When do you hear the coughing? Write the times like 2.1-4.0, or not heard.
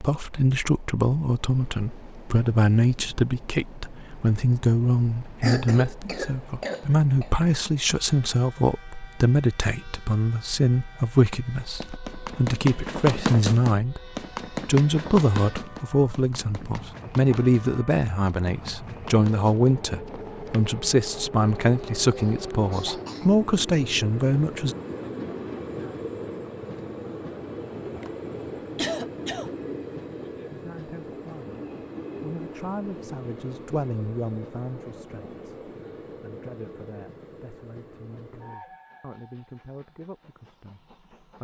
5.4-7.3, 22.1-23.3, 27.9-29.5.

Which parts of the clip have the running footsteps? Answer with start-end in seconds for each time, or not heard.
11.6-20.8.